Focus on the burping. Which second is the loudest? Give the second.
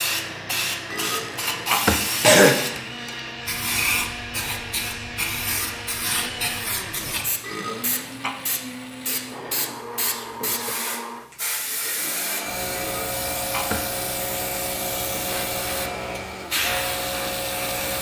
2 s.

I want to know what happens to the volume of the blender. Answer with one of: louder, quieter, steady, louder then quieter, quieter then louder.
steady.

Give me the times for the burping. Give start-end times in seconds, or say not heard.
0.9-2.8, 7.4-8.3, 12.7-13.8.